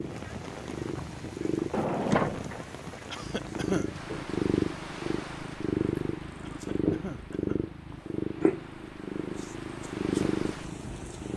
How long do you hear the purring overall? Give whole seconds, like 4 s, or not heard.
10 s.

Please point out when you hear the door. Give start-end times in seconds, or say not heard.
1.7-3.0.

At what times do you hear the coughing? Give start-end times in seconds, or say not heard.
3.1-3.9, 6.4-7.7.